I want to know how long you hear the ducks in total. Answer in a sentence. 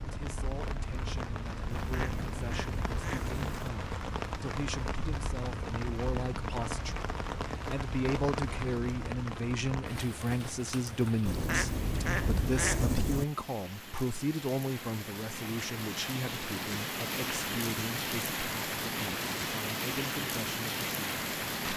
You can hear the ducks for 4 seconds altogether.